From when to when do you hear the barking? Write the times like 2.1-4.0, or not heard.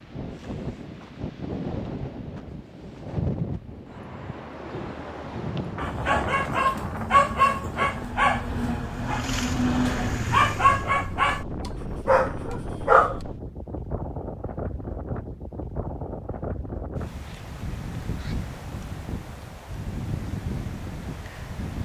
5.8-13.2.